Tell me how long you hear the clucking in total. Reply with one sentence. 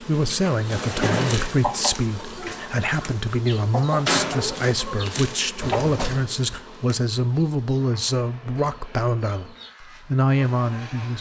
You can hear the clucking for 6 seconds altogether.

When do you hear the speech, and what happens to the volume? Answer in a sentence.
You can hear the speech from 0.0 to 11.1 s, at a steady volume.